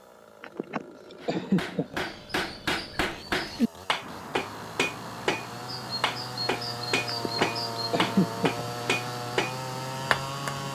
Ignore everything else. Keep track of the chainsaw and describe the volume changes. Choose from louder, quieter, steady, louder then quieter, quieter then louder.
louder.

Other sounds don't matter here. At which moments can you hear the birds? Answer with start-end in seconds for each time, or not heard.
1.9-10.7.